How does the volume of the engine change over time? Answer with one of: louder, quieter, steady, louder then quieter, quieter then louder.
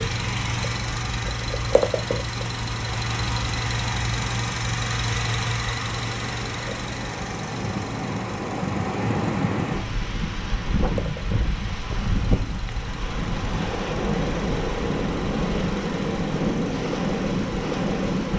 quieter.